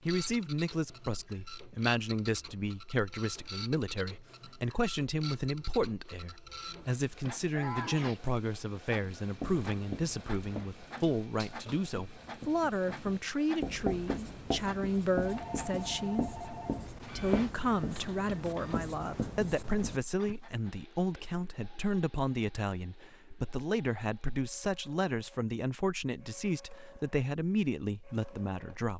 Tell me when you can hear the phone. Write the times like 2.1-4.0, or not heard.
15.2-16.9.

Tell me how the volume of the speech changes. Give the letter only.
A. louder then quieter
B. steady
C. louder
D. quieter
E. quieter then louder
B.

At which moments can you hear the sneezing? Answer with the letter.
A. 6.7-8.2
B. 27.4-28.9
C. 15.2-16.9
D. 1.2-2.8
A.